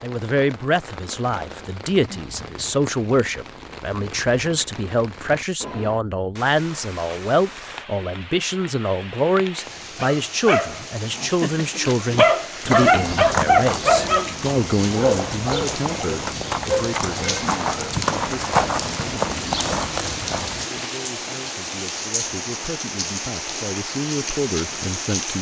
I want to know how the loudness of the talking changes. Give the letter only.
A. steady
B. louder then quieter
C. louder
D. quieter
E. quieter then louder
D.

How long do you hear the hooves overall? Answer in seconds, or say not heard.
9 s.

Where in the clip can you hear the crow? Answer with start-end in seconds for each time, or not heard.
not heard.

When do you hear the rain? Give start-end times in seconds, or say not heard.
0.0-25.3.